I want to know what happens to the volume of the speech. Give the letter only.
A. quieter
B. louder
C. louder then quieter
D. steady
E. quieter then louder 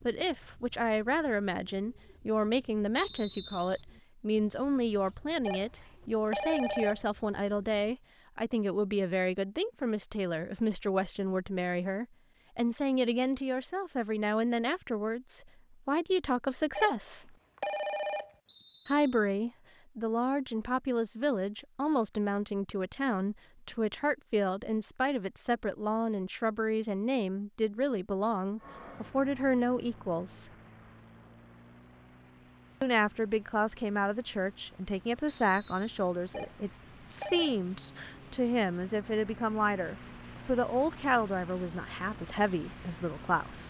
D.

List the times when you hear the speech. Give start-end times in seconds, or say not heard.
0.1-17.4, 18.9-30.5, 32.8-43.6.